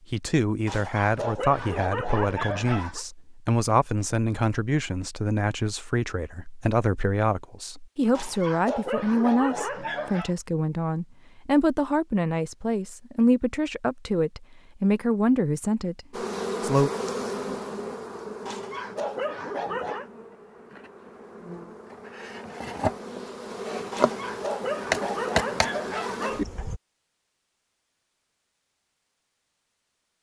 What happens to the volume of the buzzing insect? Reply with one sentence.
The volume of the buzzing insect goes down, then up.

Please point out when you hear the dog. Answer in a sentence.
The dog can be heard from 0.7 to 3.0 s, from 8.2 to 10.3 s, from 18.4 to 20.1 s and from 23.9 to 26.5 s.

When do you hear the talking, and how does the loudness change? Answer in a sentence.
You can hear the talking from 0.1 to 16.9 s, at a steady volume.